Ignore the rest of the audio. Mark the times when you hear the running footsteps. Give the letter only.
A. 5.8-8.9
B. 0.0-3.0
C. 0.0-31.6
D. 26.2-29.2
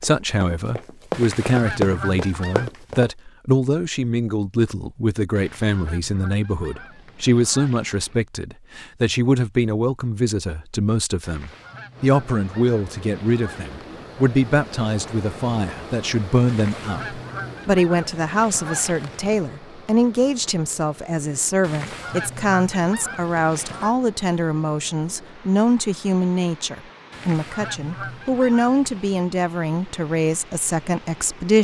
B.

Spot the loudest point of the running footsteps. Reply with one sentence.
The loudest moment of the running footsteps is at 2 seconds.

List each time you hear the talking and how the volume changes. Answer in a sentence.
You can hear the talking from 0.0 to 31.6 s, at a steady volume.